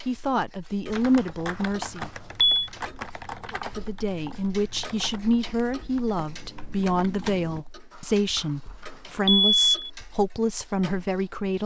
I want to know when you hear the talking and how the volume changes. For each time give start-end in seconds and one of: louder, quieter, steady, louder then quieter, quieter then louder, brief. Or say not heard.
0.0-2.1 brief
3.5-11.6 steady.